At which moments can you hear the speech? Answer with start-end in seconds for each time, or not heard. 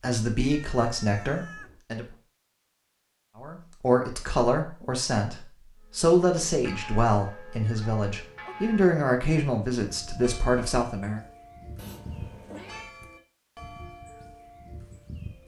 0.0-2.0, 3.4-11.2.